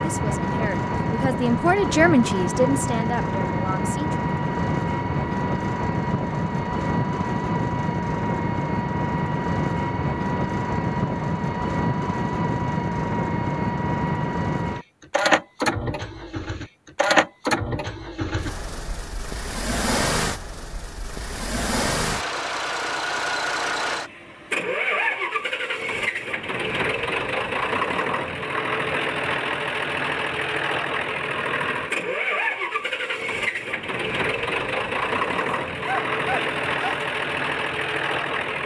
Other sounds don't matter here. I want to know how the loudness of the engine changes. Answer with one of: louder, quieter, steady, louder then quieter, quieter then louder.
steady.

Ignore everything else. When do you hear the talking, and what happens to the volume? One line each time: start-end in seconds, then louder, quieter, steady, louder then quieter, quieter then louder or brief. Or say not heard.
0.0-4.2 louder then quieter.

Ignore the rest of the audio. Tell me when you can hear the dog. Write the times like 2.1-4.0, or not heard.
35.5-37.0.